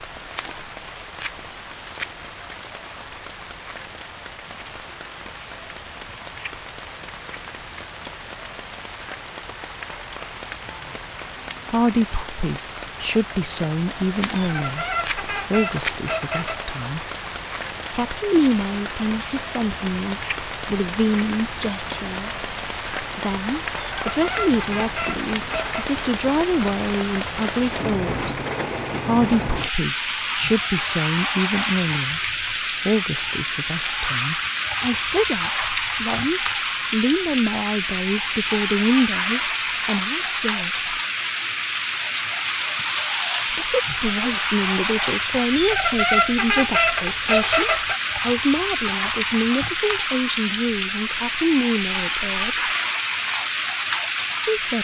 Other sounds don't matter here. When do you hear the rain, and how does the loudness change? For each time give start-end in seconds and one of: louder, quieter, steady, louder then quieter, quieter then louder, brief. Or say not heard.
0.0-54.7 louder.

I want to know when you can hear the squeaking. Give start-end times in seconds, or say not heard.
14.3-16.7, 23.8-25.9, 45.5-48.0.